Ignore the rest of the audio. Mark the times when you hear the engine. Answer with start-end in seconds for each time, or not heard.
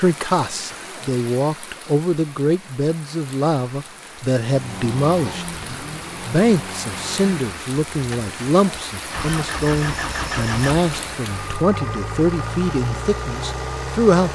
4.5-14.2.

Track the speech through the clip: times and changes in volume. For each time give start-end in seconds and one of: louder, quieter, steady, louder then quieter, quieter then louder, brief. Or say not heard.
0.0-14.2 steady.